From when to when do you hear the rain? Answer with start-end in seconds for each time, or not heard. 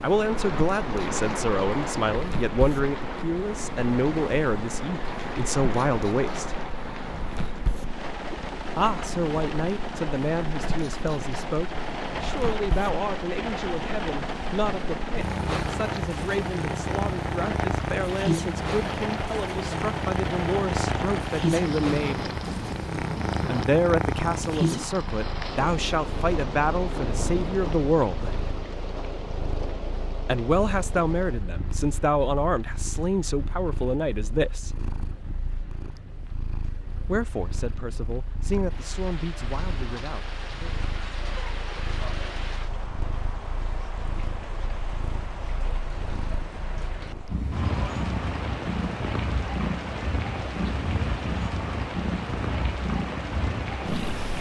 0.0-54.3.